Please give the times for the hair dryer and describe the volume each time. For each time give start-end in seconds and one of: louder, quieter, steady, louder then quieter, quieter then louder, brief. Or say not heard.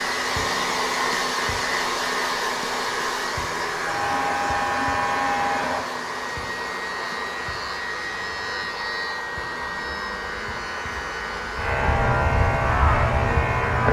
0.0-13.8 quieter.